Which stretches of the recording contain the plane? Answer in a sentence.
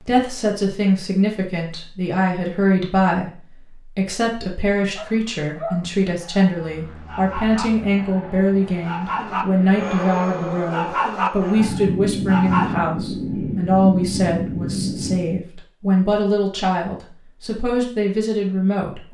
The plane can be heard from 6.5 to 15.4 s.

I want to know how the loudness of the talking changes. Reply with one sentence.
The loudness of the talking stays about the same.